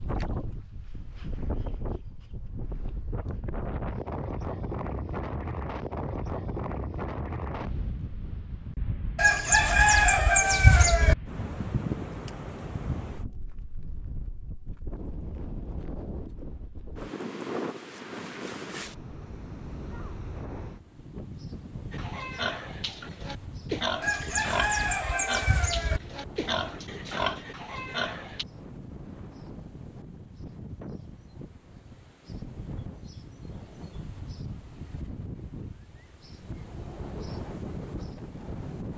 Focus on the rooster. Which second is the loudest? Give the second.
10 s.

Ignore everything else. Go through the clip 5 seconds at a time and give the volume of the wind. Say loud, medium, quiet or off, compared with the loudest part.
loud, loud, loud, loud, medium, medium, medium, loud.